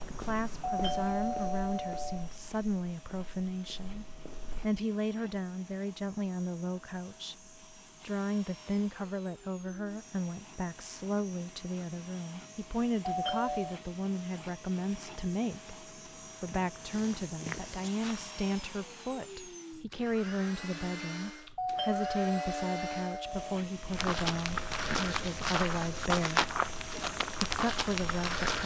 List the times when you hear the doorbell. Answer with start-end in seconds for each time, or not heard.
0.7-2.3, 13.1-13.8, 21.6-23.6.